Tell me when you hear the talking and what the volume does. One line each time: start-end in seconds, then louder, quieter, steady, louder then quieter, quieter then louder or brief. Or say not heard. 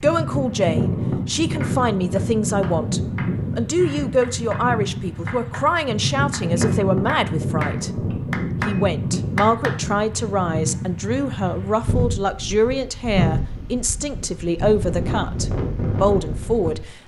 0.0-17.0 steady.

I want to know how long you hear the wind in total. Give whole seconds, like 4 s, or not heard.
17 s.